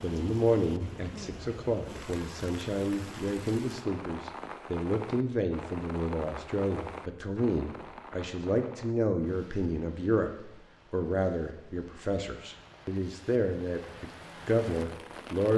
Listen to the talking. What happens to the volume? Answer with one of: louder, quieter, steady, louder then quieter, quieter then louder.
steady.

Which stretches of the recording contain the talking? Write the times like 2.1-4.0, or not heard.
0.0-15.5.